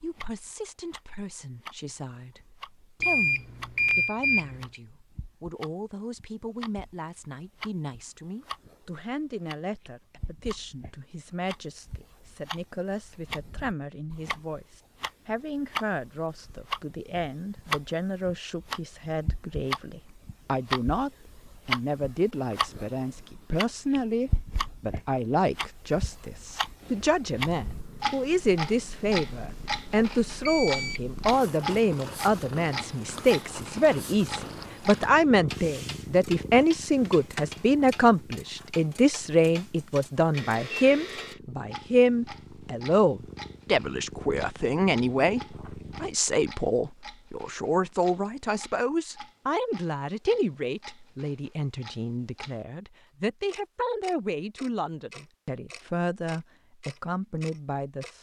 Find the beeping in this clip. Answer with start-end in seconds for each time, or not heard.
3.0-4.8, 29.9-31.0, 40.3-41.4.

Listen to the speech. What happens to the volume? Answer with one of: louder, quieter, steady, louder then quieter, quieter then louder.
louder then quieter.